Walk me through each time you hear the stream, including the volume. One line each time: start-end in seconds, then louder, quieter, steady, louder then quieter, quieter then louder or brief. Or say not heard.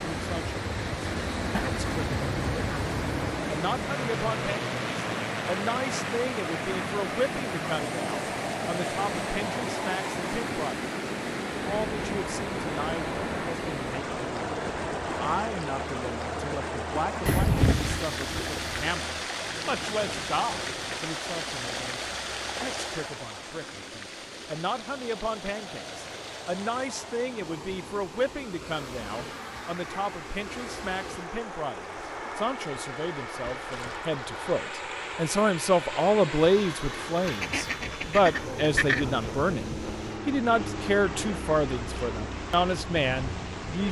0.0-43.8 quieter.